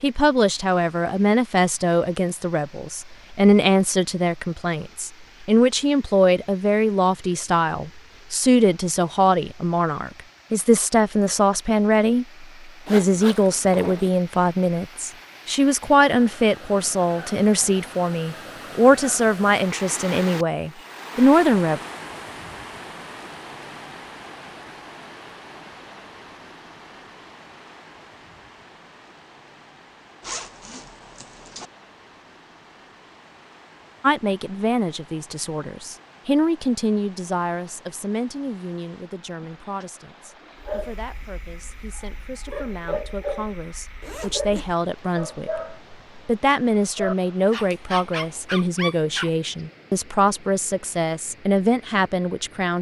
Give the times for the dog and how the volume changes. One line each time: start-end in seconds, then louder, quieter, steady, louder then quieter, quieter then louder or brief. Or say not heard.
40.6-49.3 louder.